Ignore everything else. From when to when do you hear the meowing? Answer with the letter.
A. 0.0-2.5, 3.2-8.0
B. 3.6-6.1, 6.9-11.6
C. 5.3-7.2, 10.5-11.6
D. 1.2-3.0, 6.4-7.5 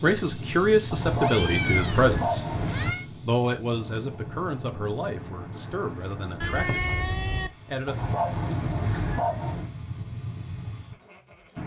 D.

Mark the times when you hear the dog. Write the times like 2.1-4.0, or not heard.
0.9-2.9, 7.8-9.7.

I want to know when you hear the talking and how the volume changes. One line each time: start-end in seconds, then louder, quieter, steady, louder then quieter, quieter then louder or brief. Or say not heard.
0.0-2.5 brief
3.2-8.0 quieter.